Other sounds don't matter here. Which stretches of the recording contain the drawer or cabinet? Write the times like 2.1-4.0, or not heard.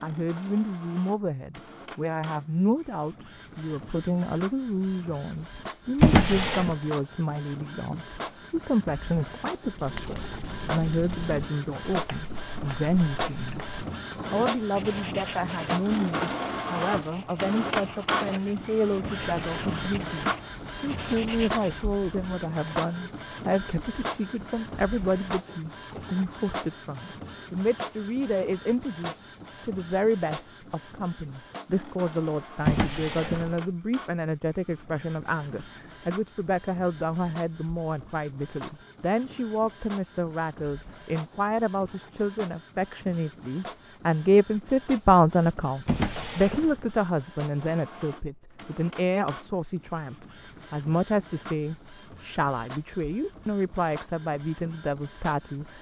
6.0-6.8, 32.6-33.5, 45.9-46.9.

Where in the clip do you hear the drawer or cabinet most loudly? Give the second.
6 s.